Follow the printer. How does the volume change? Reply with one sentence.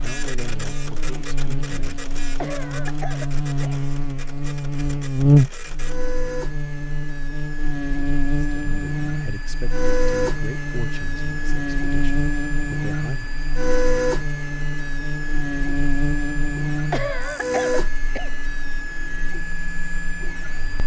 The volume of the printer goes up.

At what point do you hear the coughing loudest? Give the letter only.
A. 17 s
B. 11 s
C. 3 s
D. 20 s
A.